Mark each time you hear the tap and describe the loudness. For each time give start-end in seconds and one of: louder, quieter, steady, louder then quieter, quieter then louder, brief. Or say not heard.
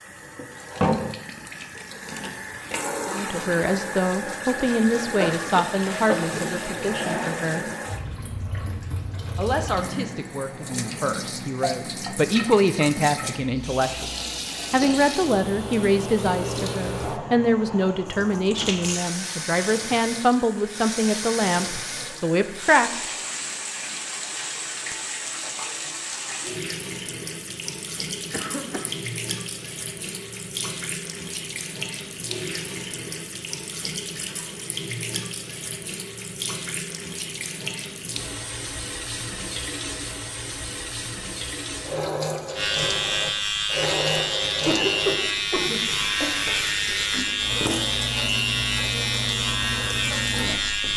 0.0-50.9 steady.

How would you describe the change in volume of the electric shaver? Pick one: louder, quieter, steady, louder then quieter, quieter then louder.
steady.